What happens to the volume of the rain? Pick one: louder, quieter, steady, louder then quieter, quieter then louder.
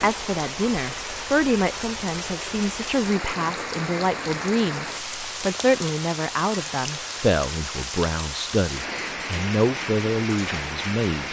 steady.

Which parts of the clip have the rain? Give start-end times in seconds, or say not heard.
0.0-11.2.